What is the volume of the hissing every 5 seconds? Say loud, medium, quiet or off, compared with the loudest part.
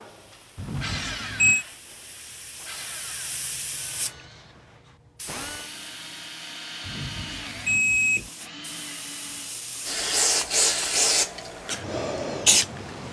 quiet, quiet, loud.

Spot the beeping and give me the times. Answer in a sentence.
The beeping can be heard from 0.6 to 1.6 s and from 6.8 to 8.3 s.